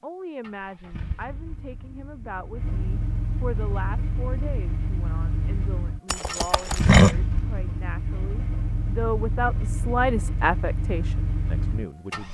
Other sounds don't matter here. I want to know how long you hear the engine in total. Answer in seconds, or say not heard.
12 s.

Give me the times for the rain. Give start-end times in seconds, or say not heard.
not heard.